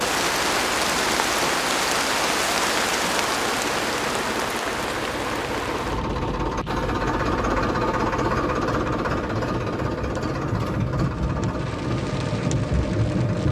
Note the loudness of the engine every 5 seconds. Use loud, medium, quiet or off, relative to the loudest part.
medium, loud, medium.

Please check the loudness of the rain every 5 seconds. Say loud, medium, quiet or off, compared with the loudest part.
loud, medium, loud.